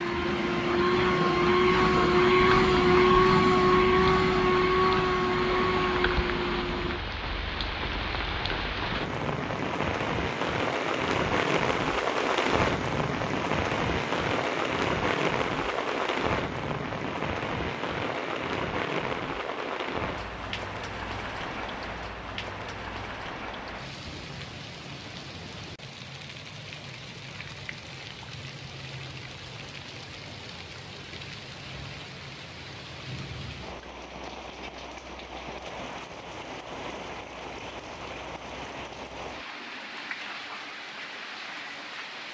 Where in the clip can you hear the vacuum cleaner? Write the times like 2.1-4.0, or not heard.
0.0-7.0.